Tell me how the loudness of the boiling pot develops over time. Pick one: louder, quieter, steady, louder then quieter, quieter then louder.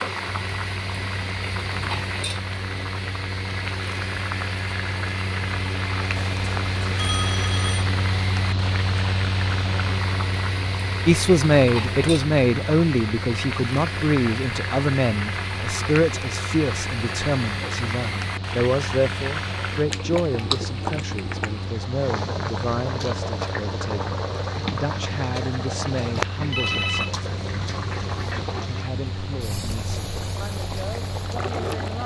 steady.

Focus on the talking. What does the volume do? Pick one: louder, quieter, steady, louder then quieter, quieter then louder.
quieter.